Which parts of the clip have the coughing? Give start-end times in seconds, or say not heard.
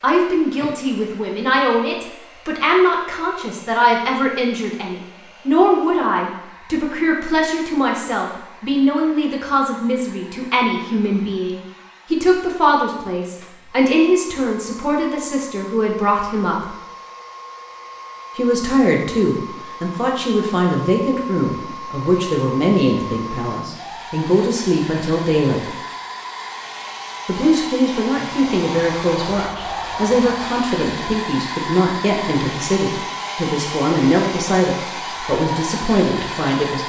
not heard.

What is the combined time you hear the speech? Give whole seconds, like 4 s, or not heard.
34 s.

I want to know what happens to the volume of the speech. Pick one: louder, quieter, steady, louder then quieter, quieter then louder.
steady.